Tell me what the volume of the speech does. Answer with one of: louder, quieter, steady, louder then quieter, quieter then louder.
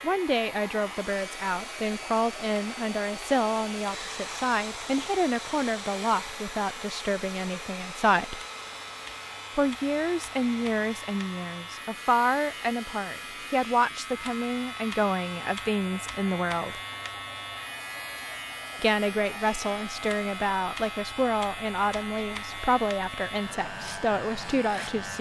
steady.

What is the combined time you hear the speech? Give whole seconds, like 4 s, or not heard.
22 s.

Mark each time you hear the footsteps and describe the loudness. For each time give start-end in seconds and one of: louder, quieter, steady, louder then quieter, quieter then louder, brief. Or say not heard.
not heard.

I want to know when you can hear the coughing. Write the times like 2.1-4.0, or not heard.
not heard.